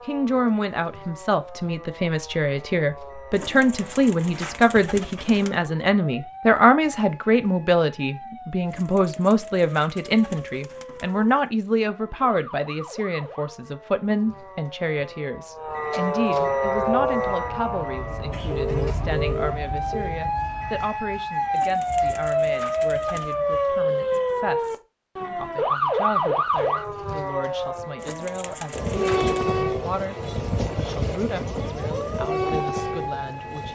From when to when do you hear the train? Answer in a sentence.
The train can be heard from 16.6 to 20.9 s and from 28.7 to 33.6 s.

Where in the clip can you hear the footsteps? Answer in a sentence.
You can't hear the footsteps here.